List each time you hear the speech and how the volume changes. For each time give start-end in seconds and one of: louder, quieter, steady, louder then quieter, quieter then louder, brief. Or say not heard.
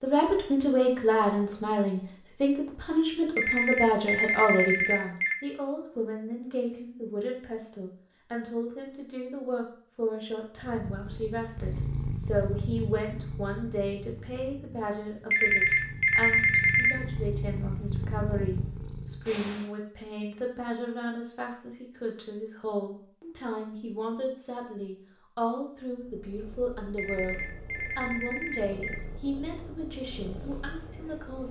0.0-31.4 quieter.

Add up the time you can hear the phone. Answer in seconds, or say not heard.
6 s.